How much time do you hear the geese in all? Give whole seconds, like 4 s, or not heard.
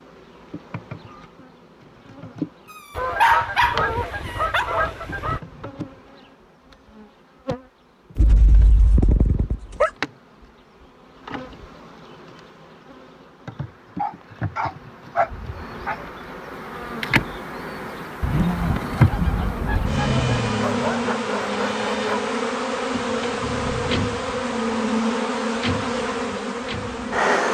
5 s.